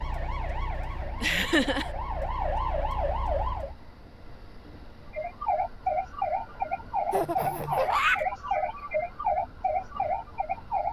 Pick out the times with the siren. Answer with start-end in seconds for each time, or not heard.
0.0-3.8, 5.1-10.8.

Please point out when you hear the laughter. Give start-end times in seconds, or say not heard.
1.2-1.9, 7.1-8.2.